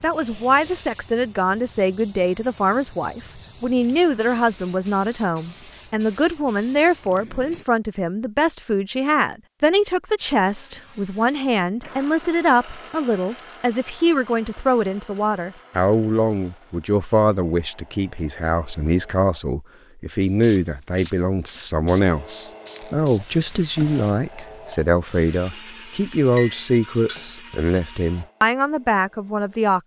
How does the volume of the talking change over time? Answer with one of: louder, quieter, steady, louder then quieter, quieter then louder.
steady.